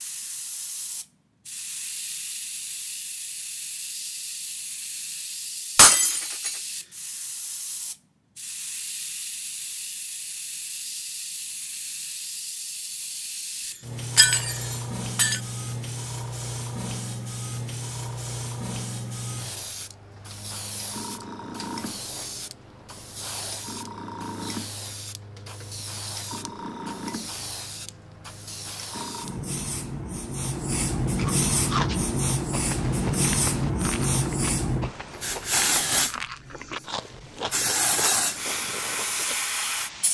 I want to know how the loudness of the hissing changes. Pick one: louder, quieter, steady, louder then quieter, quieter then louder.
louder.